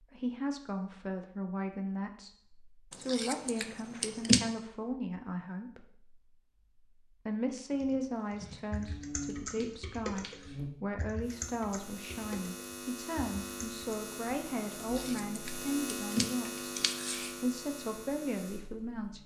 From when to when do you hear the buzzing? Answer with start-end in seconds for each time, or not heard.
8.7-19.2.